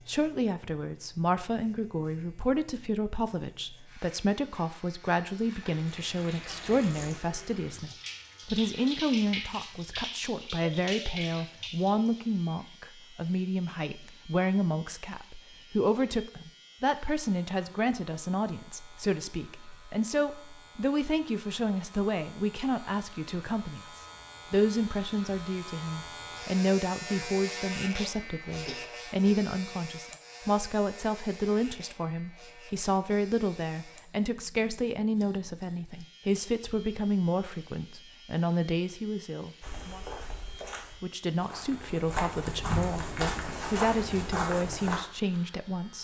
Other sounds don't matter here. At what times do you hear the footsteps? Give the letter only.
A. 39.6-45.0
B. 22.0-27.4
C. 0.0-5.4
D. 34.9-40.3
A.